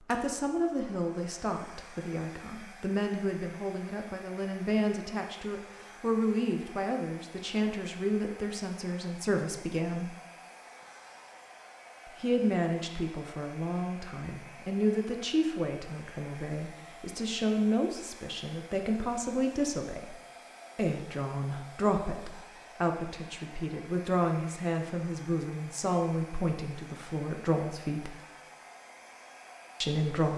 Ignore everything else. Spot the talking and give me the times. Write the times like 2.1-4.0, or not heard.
0.1-10.2, 12.2-20.1, 20.8-28.2, 29.8-30.3.